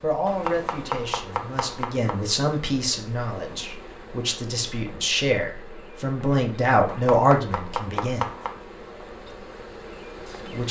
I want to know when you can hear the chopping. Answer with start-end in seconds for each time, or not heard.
0.2-2.2, 6.8-8.6.